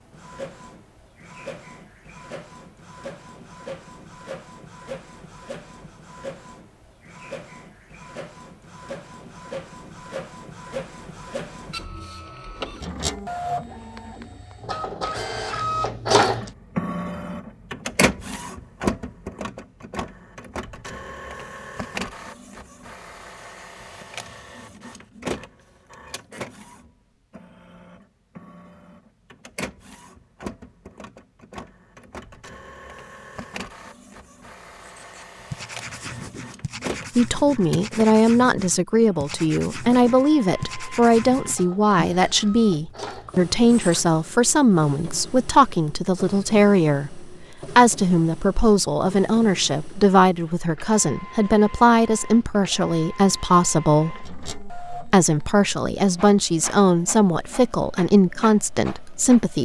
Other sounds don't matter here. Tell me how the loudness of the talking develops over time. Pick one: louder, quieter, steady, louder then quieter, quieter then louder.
steady.